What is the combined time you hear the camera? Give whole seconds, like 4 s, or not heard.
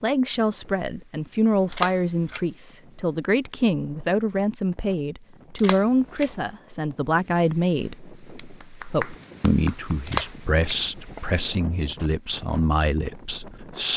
3 s.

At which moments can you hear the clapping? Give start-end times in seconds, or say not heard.
8.3-10.0.